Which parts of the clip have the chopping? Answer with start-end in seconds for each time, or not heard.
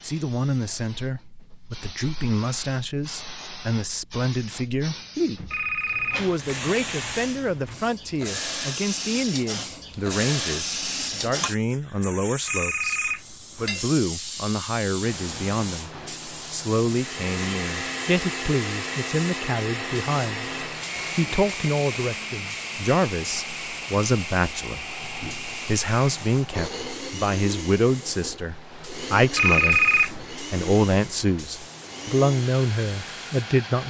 not heard.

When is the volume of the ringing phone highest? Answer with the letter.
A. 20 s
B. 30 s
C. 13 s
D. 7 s
B.